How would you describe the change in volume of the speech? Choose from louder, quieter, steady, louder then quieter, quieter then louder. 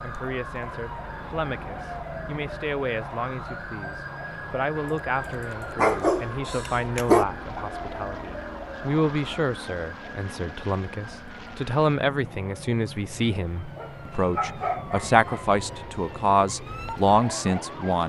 louder.